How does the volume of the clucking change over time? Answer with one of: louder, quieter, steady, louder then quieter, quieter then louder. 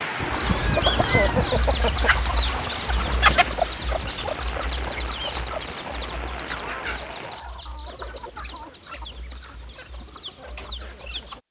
quieter.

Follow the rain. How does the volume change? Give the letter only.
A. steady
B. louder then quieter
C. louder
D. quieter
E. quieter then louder
A.